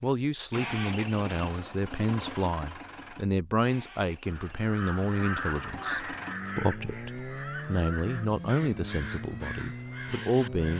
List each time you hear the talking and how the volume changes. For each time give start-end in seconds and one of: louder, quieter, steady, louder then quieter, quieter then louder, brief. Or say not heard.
0.0-10.7 steady.